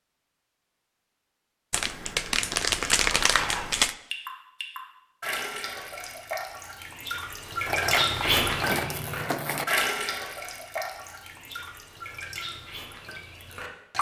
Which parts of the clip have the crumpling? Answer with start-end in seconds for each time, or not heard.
1.7-4.0, 7.7-9.7.